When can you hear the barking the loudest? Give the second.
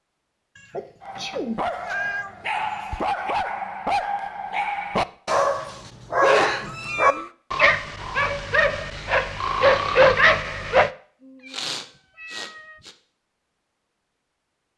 10 s.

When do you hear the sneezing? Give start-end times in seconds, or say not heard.
0.7-1.6, 6.2-7.2, 11.5-12.5.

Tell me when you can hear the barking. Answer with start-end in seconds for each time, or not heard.
1.0-10.9.